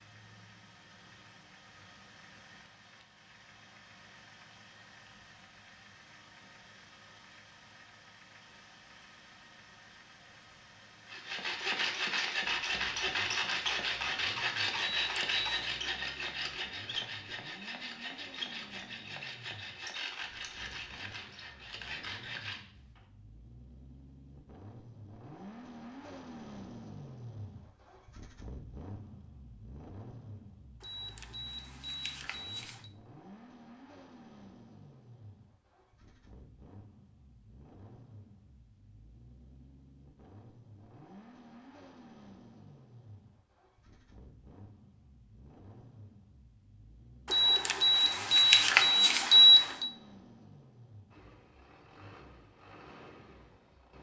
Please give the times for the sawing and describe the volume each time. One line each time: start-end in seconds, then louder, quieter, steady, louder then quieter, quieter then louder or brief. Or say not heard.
11.1-23.0 quieter.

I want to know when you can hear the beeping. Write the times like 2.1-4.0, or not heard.
14.8-15.5, 30.8-32.9, 47.3-49.9.